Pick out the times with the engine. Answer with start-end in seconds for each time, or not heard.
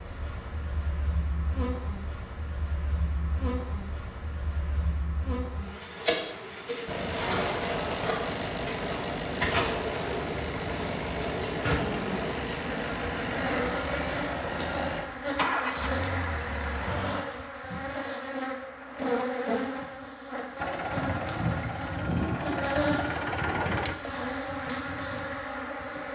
6.8-17.2, 20.6-23.9.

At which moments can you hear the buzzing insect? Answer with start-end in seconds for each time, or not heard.
0.0-26.1.